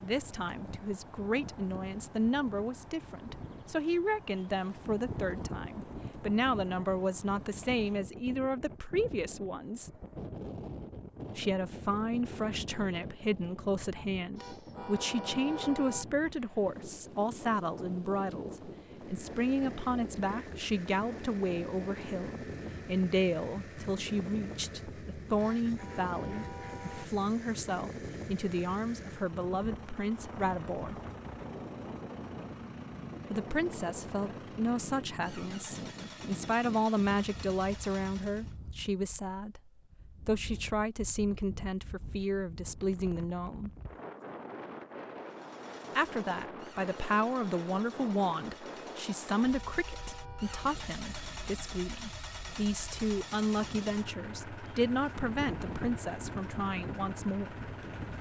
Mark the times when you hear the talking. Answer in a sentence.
You can hear the talking from 0.0 to 9.9 s, from 11.3 to 31.0 s, from 33.3 to 43.7 s and from 46.0 to 57.6 s.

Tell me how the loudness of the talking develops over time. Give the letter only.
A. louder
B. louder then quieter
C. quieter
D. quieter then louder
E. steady
E.